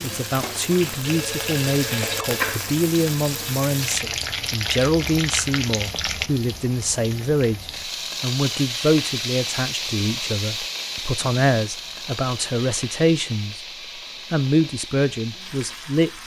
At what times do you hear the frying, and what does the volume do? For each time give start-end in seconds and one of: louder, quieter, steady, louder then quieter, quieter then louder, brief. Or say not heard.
0.0-16.2 quieter.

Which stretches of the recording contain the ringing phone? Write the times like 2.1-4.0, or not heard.
1.0-2.5.